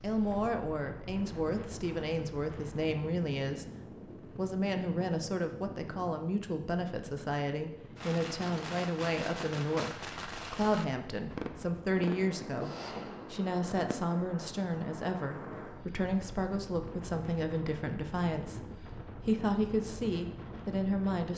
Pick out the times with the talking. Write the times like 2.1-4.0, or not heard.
0.0-21.3.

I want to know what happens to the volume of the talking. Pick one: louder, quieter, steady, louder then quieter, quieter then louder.
steady.